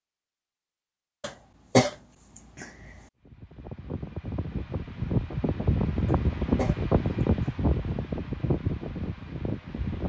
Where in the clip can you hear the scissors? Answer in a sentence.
You can't hear the scissors here.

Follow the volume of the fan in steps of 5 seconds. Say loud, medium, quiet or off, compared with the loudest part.
medium, loud.